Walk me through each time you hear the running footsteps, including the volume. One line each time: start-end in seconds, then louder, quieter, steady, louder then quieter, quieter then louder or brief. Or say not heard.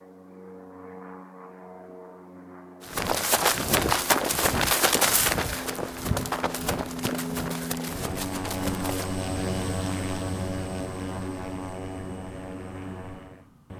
2.9-9.2 quieter.